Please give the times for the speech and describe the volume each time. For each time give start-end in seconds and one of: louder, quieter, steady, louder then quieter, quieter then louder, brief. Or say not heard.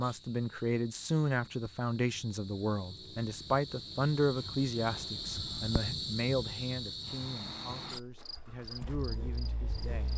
0.0-10.1 quieter.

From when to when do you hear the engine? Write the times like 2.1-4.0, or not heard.
7.0-10.1.